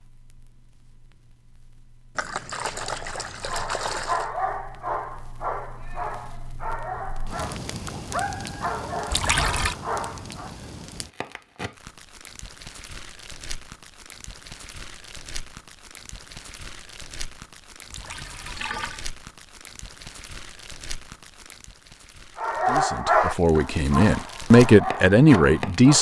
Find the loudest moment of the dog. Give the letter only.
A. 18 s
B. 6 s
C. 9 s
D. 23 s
D.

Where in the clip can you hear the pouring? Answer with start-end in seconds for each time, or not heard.
2.1-4.3, 9.1-9.8, 17.9-19.1.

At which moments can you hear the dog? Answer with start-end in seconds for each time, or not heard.
3.5-10.6, 22.4-25.9.